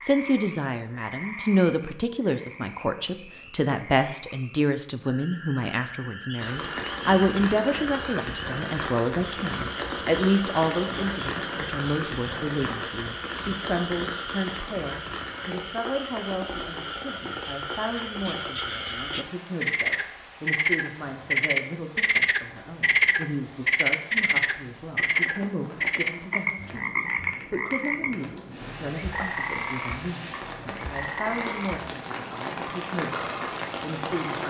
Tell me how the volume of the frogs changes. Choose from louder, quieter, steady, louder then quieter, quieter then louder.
louder then quieter.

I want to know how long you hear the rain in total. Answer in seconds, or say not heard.
28 s.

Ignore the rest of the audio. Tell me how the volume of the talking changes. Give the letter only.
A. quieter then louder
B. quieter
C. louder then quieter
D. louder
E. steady
B.